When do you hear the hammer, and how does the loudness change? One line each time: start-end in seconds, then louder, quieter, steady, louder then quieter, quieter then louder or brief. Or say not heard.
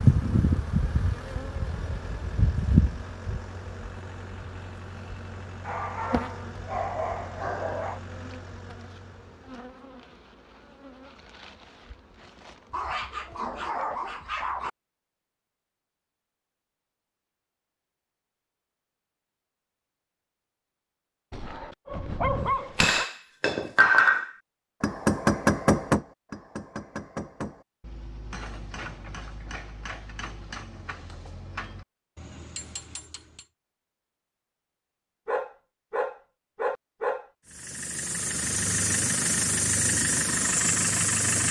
22.8-33.5 quieter.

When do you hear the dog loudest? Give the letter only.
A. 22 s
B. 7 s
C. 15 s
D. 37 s
A.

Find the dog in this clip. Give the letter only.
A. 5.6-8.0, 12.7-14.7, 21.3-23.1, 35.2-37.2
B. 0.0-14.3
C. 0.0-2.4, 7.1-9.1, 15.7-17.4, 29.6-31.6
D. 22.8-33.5
A.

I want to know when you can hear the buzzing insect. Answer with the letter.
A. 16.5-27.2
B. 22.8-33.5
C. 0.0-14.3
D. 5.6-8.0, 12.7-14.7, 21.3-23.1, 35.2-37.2
C.